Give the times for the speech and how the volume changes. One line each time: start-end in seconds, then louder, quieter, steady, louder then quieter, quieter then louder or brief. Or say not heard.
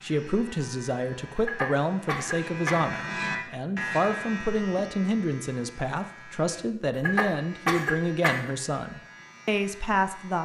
0.0-10.3 steady.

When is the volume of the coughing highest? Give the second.
8 s.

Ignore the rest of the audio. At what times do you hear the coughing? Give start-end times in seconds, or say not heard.
1.4-2.8, 7.0-8.6.